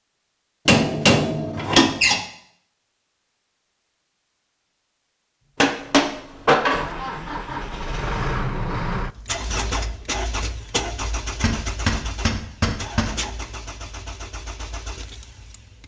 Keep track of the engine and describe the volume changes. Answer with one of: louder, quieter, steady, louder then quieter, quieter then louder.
quieter.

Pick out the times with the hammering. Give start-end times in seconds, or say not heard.
0.7-2.2, 5.6-6.9, 11.4-13.2.